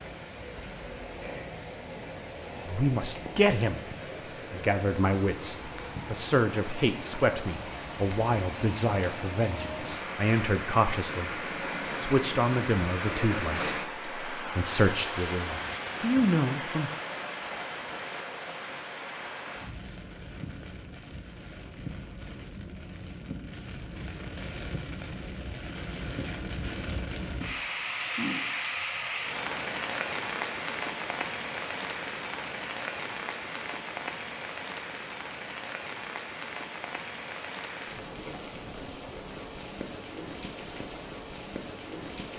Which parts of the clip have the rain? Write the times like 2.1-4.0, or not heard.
0.0-42.3.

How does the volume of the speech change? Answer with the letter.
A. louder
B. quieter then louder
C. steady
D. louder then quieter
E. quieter
C.